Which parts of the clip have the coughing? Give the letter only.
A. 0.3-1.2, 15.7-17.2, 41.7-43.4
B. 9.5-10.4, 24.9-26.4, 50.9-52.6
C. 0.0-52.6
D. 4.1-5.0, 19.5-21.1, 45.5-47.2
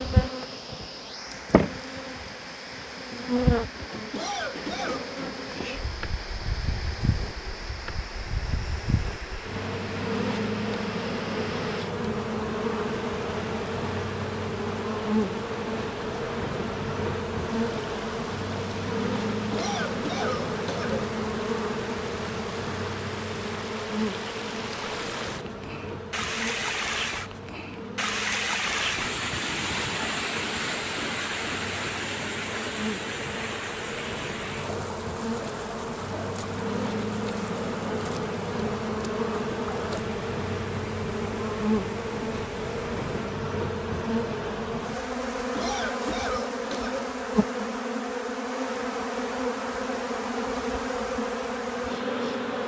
D.